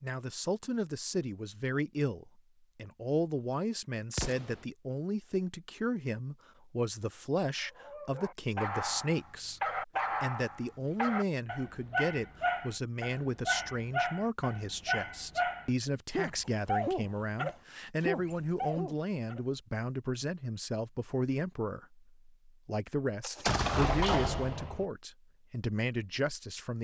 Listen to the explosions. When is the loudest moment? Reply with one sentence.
The loudest moment of the explosions is at 24 seconds.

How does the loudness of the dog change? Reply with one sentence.
The loudness of the dog stays about the same.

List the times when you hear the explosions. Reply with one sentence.
You can hear the explosions from 4.1 to 4.6 s and from 23.2 to 24.9 s.